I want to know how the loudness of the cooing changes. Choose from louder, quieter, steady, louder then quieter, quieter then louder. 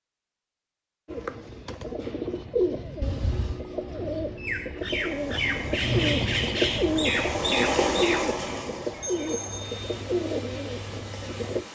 louder then quieter.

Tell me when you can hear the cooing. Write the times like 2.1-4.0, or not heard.
1.1-11.7.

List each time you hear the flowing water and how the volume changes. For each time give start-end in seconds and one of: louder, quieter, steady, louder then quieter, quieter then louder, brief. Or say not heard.
4.8-11.7 louder then quieter.